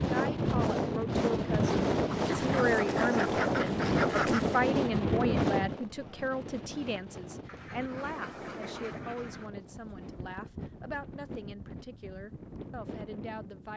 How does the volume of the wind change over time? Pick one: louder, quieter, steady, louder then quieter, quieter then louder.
quieter.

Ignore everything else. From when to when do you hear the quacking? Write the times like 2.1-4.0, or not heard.
2.1-4.6, 7.5-9.5.